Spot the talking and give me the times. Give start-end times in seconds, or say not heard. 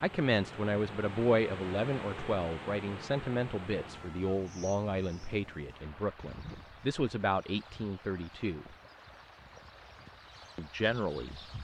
0.0-8.8, 10.6-11.4.